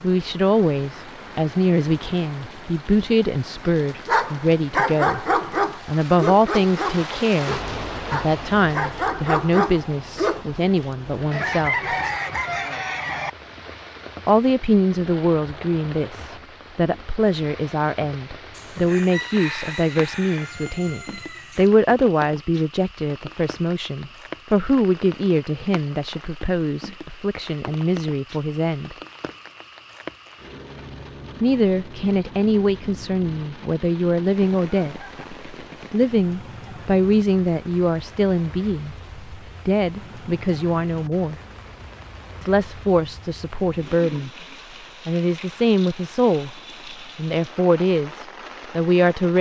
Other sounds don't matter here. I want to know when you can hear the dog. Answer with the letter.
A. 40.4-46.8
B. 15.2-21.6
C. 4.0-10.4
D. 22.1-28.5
C.